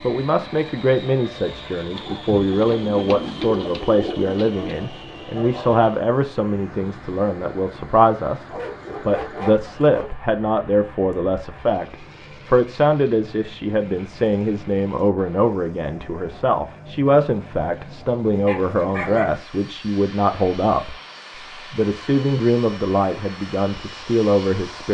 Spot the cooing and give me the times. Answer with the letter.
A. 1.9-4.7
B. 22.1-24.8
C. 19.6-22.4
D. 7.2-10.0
A.